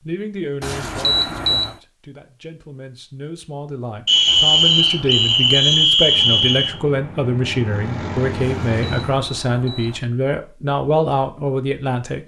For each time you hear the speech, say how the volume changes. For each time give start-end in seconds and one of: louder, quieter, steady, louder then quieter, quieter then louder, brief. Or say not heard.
0.1-12.2 louder.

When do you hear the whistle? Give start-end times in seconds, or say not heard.
4.0-6.8.